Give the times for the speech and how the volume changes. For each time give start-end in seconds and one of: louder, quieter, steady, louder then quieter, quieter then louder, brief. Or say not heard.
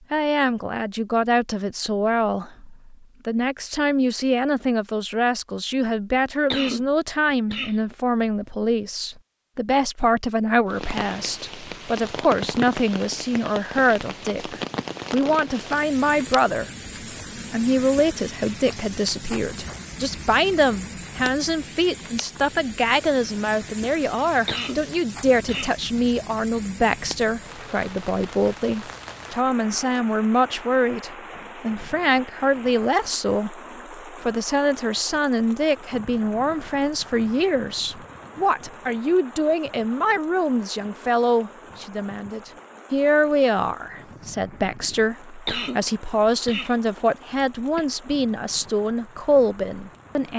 0.1-16.7 steady
17.5-50.3 steady.